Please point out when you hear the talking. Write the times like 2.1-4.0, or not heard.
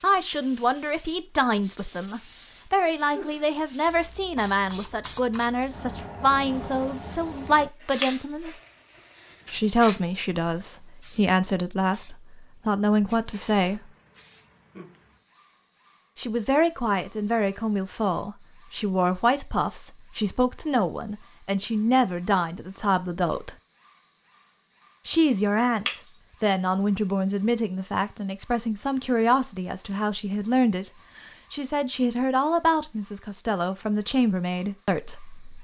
0.0-8.6, 9.5-13.8, 16.1-23.6, 25.1-30.9, 31.5-35.5.